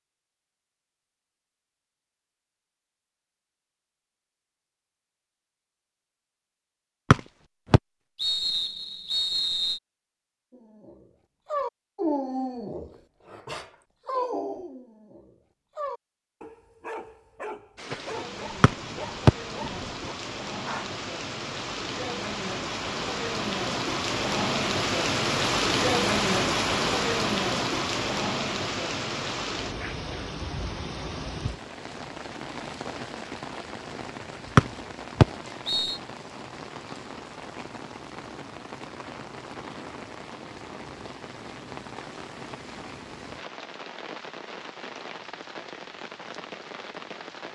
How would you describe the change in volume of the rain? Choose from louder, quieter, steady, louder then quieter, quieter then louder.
louder then quieter.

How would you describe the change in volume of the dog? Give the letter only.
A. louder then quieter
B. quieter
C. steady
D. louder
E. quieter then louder
B.